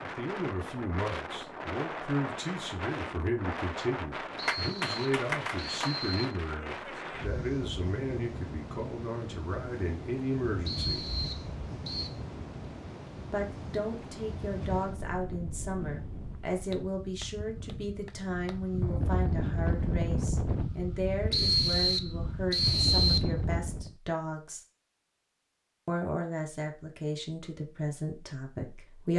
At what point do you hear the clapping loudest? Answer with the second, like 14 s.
5 s.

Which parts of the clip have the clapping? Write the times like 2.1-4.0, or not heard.
4.5-6.0, 16.7-18.6.